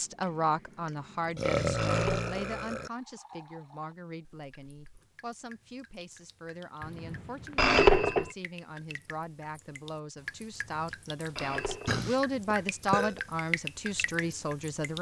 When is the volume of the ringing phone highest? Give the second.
8 s.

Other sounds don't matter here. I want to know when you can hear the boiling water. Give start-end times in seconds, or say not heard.
not heard.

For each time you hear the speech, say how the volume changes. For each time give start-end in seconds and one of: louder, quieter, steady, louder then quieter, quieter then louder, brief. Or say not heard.
0.0-14.9 quieter then louder.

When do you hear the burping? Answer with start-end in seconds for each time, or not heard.
1.4-2.9, 11.8-13.2.